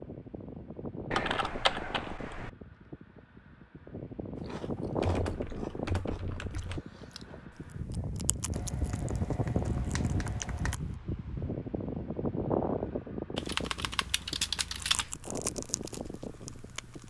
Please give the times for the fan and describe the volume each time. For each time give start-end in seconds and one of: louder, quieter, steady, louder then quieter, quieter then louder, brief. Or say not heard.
0.0-17.0 louder then quieter.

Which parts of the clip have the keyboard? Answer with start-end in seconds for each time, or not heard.
1.1-2.5, 5.0-6.8, 8.5-10.8, 13.3-15.1.